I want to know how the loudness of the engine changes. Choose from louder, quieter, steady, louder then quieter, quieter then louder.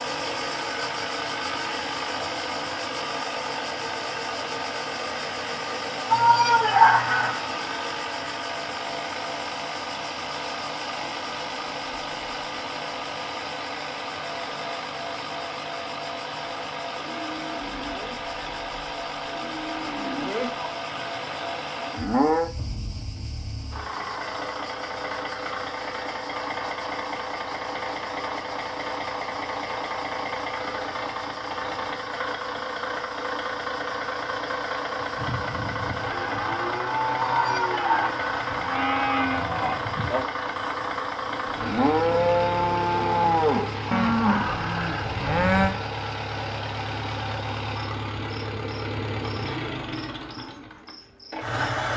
steady.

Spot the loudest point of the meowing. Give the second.
7 s.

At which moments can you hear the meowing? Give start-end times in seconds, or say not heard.
6.1-7.5, 37.4-38.8.